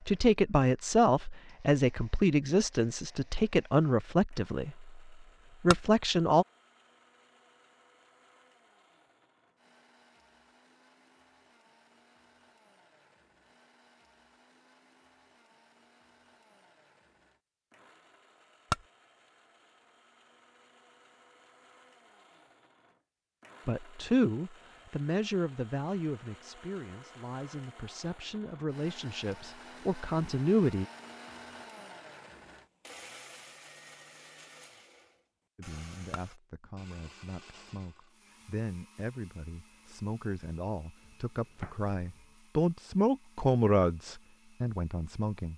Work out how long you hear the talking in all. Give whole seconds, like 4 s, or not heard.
23 s.